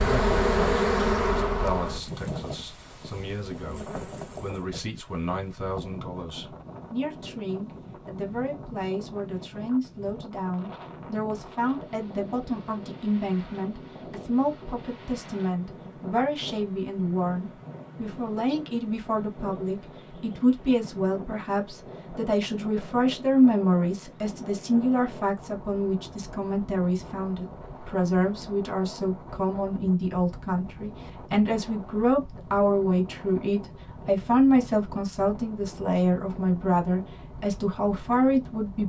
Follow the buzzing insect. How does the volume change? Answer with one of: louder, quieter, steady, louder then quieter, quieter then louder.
quieter then louder.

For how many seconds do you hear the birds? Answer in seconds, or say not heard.
not heard.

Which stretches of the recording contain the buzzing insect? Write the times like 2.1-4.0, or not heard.
0.0-4.6.